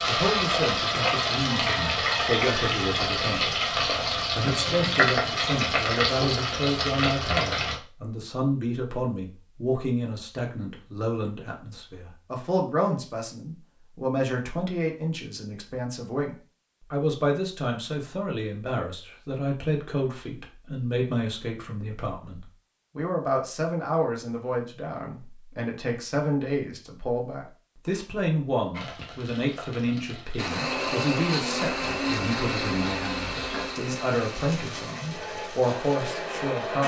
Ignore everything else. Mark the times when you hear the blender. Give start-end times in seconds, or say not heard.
30.4-36.8.